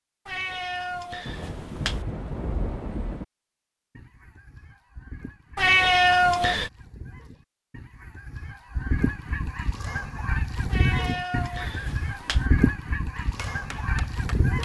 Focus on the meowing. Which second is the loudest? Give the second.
6 s.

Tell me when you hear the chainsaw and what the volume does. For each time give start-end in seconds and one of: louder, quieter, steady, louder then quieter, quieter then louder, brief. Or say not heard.
not heard.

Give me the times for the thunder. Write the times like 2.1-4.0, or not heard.
1.2-3.2.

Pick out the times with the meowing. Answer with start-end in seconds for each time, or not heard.
0.2-1.9, 5.5-6.7, 10.7-12.4.